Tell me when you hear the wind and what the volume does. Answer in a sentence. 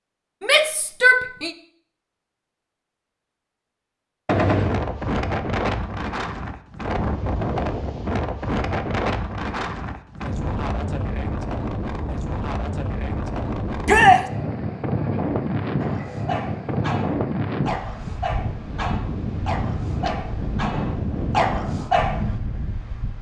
You can hear the wind from 4.5 to 23.1 s, at a steady volume.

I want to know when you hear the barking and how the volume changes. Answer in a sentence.
You can hear the barking from 15.8 to 22.4 s, getting louder.